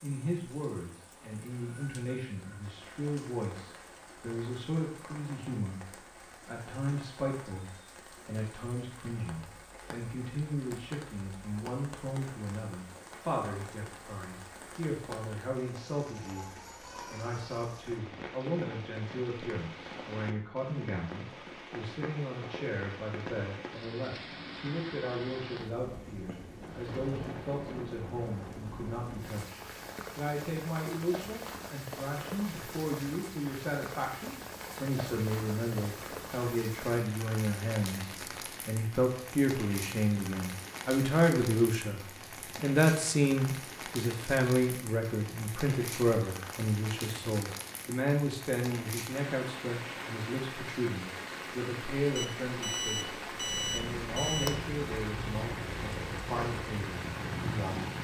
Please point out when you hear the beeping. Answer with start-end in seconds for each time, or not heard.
52.1-54.5.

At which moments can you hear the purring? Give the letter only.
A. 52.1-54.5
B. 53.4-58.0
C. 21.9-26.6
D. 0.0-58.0
B.